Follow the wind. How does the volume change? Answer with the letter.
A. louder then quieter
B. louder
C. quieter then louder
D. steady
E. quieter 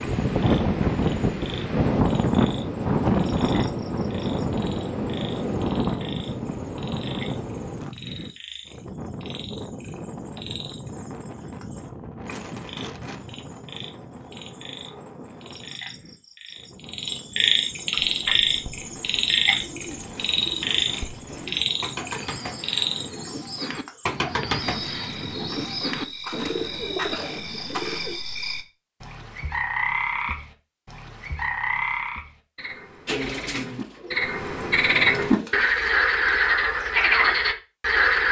E.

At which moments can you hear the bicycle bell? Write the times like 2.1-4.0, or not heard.
not heard.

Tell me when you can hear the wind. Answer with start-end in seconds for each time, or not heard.
0.0-23.1.